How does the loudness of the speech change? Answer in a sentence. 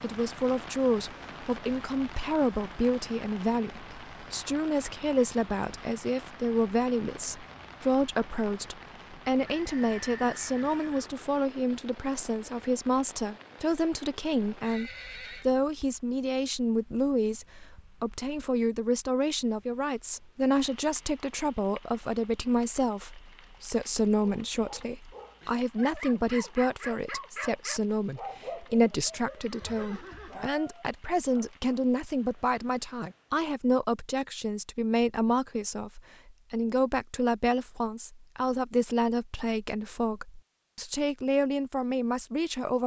The volume of the speech stays about the same.